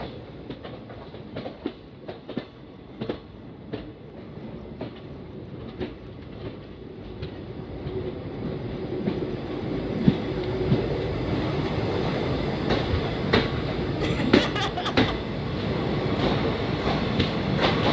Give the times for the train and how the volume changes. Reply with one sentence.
You can hear the train from 0.0 to 17.8 s, getting louder.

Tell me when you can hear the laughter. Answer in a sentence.
You can hear the laughter from 14.0 to 15.2 s.